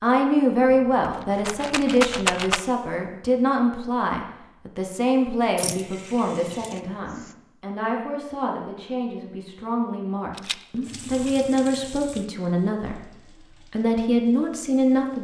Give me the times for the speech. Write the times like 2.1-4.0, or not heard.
0.0-13.0, 13.7-15.1.